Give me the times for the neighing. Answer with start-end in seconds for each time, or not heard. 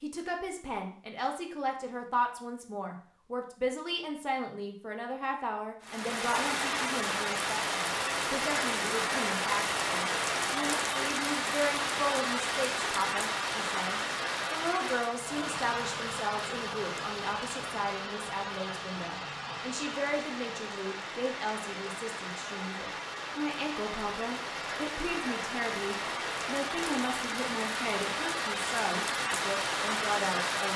not heard.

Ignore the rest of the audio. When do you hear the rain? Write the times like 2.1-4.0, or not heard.
5.8-30.7.